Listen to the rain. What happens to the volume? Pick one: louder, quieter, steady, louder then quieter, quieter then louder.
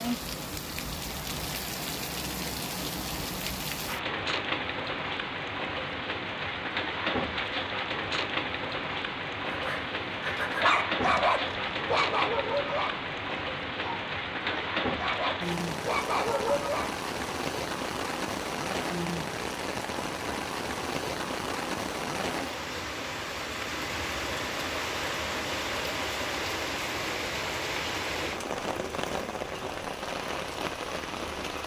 steady.